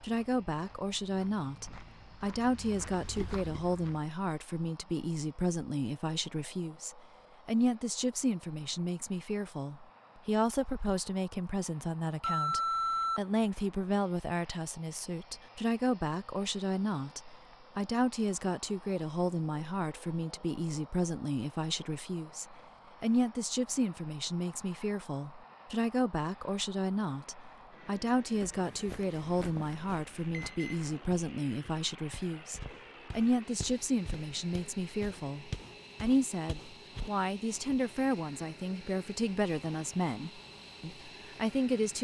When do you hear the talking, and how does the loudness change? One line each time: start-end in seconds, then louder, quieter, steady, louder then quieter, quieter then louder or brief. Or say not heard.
0.0-41.9 steady.